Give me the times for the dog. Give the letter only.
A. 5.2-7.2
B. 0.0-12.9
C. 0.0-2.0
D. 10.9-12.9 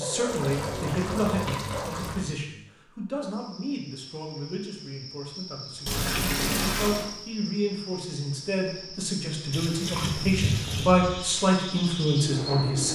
C.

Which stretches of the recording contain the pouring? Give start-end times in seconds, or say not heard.
0.2-2.2, 5.8-7.0, 9.5-10.9.